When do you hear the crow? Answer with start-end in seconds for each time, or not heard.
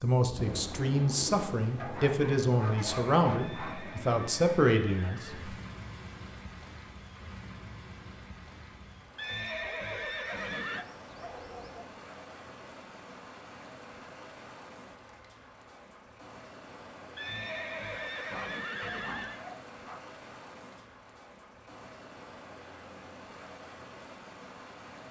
not heard.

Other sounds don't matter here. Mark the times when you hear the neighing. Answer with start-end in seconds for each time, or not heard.
3.4-5.5, 9.2-10.8, 17.1-19.4.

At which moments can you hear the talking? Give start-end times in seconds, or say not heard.
0.0-5.5.